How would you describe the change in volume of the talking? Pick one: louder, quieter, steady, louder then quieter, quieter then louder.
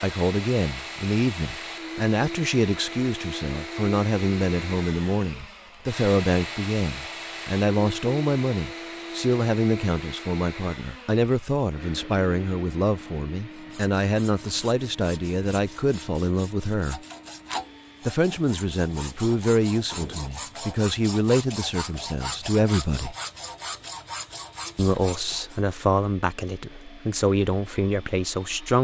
steady.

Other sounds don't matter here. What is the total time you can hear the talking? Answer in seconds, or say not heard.
26 s.